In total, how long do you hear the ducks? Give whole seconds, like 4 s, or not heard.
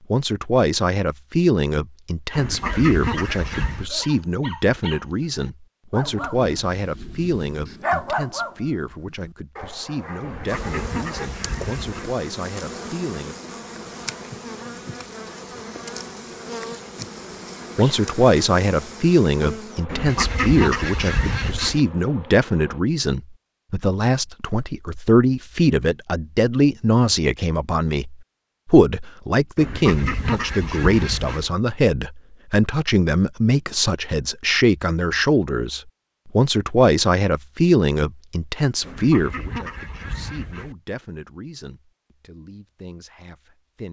9 s.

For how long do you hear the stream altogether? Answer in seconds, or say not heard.
not heard.